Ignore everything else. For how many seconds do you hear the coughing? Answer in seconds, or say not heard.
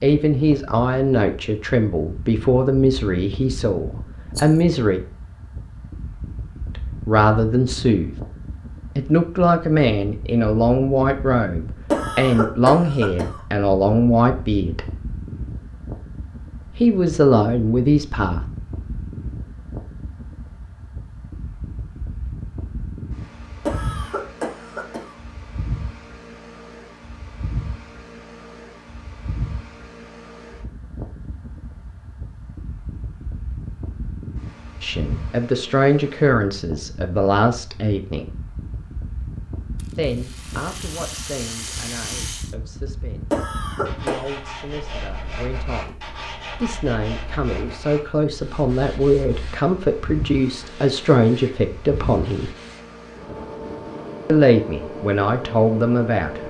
4 s.